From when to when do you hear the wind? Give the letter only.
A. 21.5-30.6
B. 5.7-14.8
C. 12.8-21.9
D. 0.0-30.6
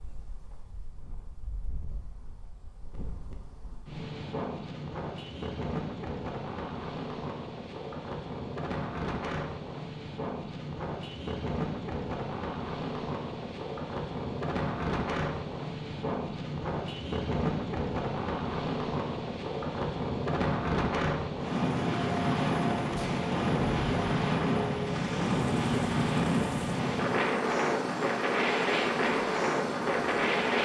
D.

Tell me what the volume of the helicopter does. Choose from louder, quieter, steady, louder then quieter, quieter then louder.
steady.